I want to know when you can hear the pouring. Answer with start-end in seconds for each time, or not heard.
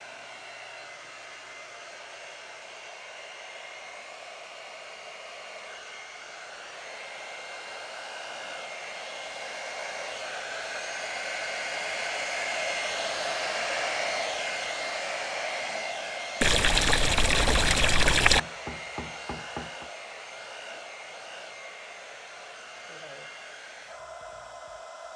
16.4-18.4.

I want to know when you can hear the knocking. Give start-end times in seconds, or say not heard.
18.4-19.9.